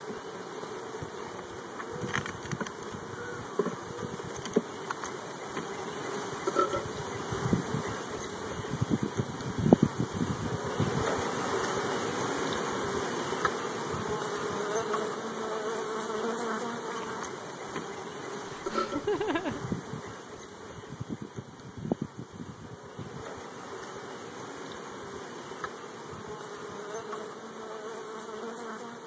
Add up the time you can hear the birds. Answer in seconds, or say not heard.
not heard.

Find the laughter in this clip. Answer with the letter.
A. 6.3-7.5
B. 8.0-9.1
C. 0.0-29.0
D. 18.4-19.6
D.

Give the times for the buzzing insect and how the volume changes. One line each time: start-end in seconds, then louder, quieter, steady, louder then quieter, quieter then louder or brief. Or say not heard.
0.0-29.0 louder then quieter.